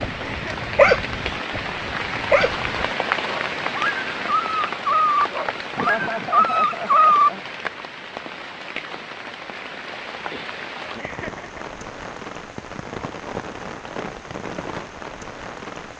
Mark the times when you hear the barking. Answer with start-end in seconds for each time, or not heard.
0.0-7.3.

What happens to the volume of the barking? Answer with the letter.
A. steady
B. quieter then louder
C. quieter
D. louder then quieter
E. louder
B.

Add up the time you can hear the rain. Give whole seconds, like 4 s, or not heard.
16 s.